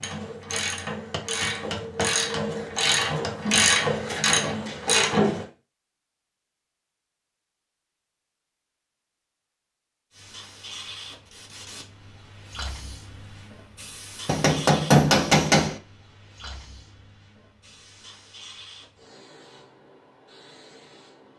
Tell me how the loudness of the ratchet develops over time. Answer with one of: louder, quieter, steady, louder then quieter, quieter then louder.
louder.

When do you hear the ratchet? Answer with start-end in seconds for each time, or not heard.
0.0-5.5.